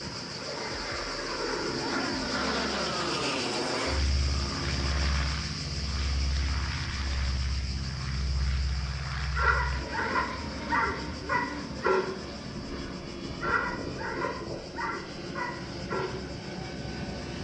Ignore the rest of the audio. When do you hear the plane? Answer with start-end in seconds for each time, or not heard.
0.0-17.3.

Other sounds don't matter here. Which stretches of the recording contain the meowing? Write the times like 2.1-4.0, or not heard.
not heard.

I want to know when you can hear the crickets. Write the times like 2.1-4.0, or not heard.
0.0-17.3.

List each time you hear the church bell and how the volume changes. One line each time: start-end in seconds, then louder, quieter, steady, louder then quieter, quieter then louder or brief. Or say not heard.
not heard.